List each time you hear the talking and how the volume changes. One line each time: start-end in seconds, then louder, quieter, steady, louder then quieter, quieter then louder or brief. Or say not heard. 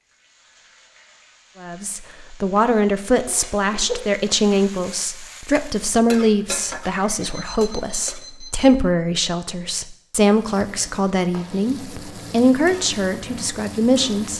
1.6-14.3 steady.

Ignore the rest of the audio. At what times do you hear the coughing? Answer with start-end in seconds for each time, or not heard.
3.1-4.0.